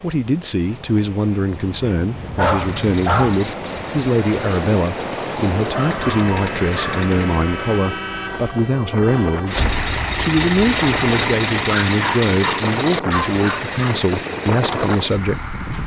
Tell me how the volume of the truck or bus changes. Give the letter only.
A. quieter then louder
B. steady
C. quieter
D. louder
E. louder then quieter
E.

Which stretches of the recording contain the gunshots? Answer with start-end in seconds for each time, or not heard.
5.8-7.8.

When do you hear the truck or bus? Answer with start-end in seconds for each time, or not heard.
2.5-15.8.